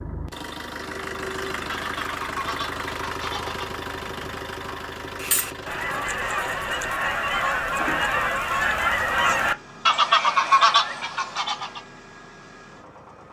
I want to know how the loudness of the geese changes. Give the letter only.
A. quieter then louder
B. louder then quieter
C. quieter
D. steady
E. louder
E.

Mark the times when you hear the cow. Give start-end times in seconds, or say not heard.
not heard.